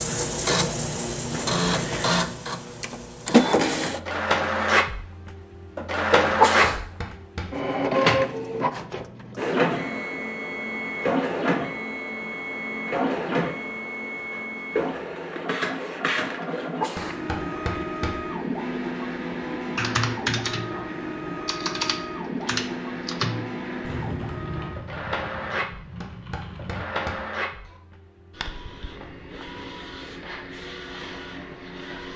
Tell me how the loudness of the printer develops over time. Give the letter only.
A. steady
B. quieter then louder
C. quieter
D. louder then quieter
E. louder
C.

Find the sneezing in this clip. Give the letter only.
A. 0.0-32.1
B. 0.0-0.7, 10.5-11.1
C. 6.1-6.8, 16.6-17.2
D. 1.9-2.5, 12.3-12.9
C.